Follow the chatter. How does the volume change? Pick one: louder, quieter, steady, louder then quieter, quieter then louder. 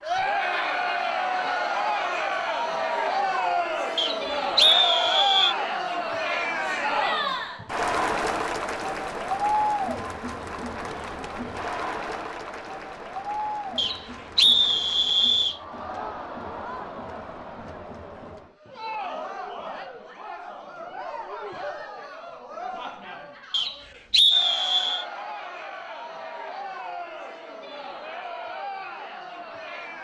quieter.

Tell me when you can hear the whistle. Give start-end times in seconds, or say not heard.
4.0-5.5, 13.8-15.6, 23.5-25.1.